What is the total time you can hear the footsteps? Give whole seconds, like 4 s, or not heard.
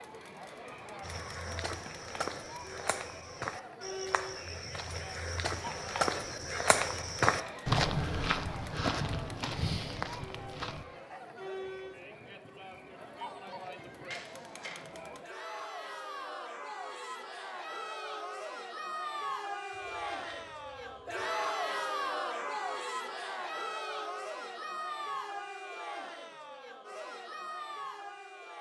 10 s.